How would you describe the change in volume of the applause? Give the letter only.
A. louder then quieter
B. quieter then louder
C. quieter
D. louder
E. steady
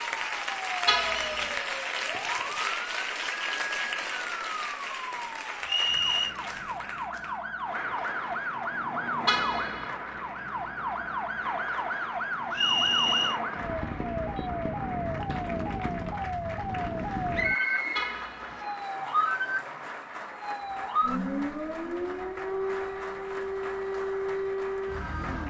C.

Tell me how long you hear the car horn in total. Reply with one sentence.
You can hear the car horn for 2 seconds altogether.